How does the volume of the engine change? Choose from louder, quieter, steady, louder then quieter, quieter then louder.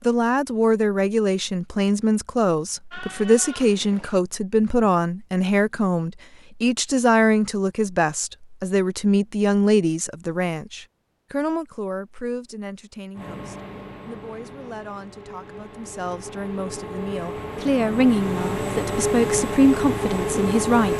louder.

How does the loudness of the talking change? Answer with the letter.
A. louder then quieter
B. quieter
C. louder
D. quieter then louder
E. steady
D.